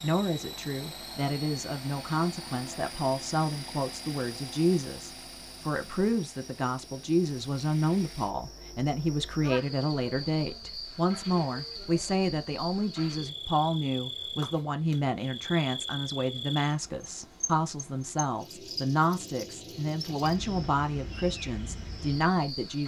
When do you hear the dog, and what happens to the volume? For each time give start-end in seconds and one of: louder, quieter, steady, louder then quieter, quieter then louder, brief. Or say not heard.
not heard.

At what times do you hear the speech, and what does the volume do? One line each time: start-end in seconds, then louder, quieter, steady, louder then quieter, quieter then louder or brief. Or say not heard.
0.0-22.8 steady.